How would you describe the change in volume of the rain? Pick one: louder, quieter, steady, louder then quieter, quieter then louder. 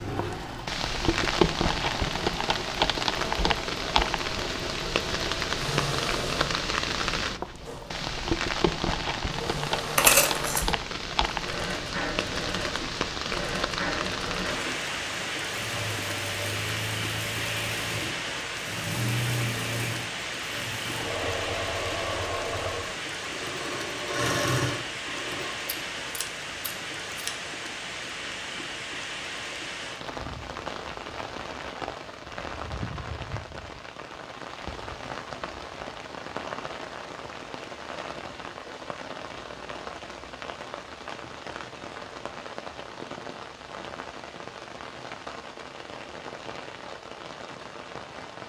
quieter.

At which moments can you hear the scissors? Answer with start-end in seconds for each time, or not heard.
9.9-10.7, 25.6-27.3.